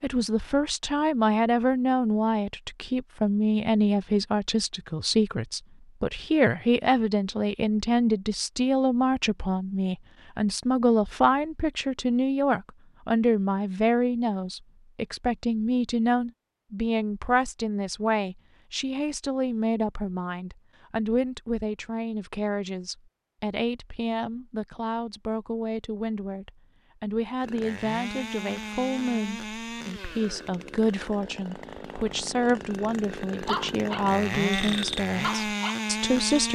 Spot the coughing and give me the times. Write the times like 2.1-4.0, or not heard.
not heard.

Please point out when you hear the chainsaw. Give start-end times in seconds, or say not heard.
27.4-36.4.